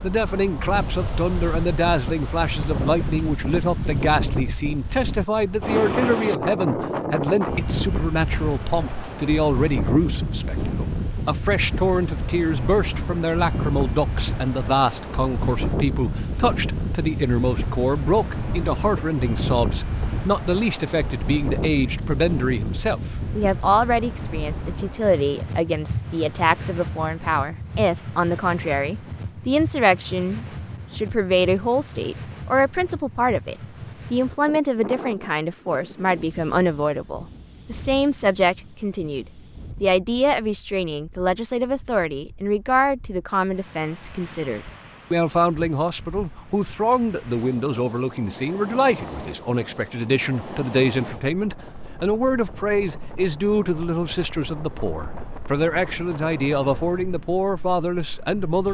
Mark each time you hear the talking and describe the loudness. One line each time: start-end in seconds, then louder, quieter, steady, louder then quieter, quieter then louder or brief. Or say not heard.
0.0-58.7 steady.